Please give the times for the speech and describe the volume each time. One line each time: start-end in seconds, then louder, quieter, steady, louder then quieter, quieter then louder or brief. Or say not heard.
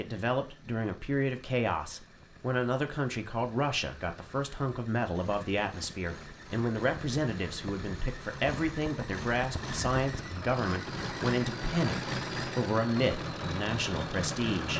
0.0-14.7 steady.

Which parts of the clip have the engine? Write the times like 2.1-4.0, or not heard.
0.0-14.7.